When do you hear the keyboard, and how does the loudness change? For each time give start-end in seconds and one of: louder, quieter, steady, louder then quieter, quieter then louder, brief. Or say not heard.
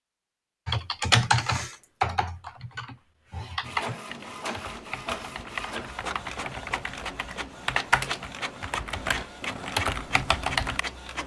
0.7-10.8 quieter then louder.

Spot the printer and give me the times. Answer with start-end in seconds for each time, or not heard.
3.6-11.2.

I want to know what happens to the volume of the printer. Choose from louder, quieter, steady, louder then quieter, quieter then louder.
steady.